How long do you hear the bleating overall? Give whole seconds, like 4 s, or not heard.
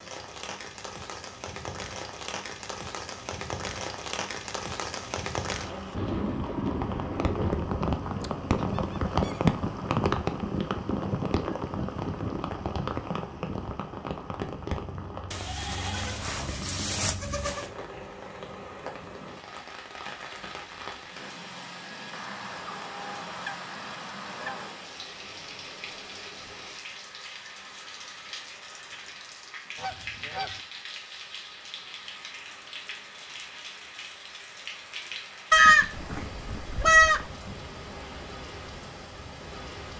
4 s.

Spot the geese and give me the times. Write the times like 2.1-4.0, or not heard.
8.2-9.5, 22.1-24.8, 29.8-30.6.